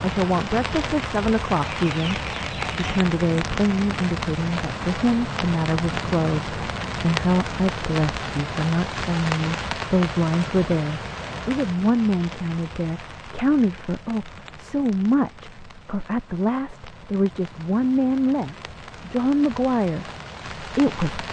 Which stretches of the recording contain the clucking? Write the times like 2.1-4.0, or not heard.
1.8-3.0.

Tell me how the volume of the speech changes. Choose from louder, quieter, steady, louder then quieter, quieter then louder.
steady.